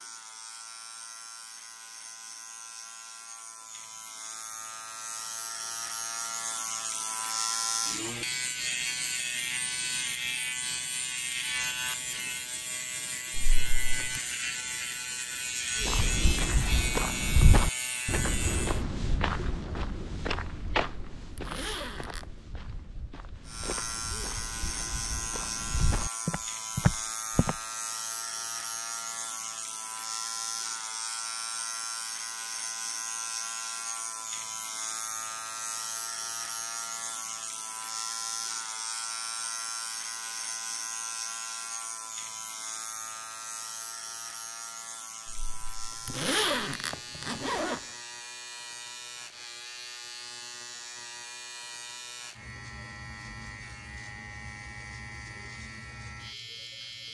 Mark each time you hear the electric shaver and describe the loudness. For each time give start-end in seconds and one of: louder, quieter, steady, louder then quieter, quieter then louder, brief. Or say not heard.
0.0-18.9 louder
23.4-57.0 quieter.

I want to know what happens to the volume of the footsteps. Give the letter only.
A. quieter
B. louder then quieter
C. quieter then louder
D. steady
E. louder
C.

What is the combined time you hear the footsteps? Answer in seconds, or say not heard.
12 s.